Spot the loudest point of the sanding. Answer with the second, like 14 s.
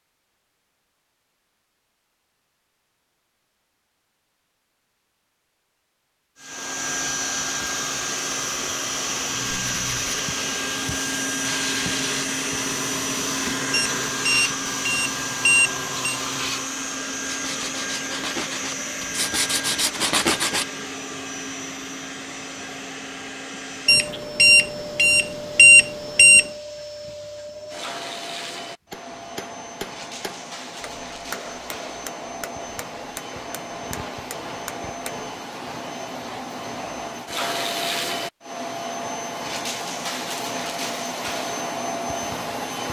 20 s.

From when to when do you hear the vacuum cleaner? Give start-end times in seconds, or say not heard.
6.4-42.8.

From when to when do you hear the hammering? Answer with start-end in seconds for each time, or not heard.
28.9-35.3.